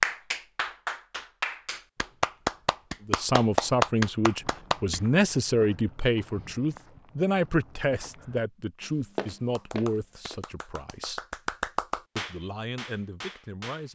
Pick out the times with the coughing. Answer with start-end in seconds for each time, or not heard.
not heard.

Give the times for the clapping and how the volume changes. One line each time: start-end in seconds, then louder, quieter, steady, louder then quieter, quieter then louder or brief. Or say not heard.
0.0-5.0 louder
9.6-13.9 louder then quieter.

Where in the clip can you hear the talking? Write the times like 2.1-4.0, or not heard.
3.0-11.2, 12.2-13.9.